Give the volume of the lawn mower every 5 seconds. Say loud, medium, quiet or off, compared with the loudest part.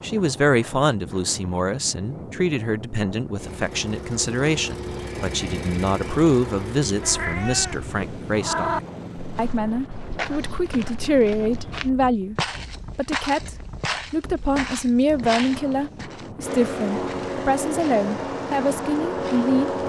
medium, medium, off, loud.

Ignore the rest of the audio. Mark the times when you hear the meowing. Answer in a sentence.
The meowing can be heard from 7.0 to 8.8 s.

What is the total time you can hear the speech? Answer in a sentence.
The speech can be heard for 19 seconds in total.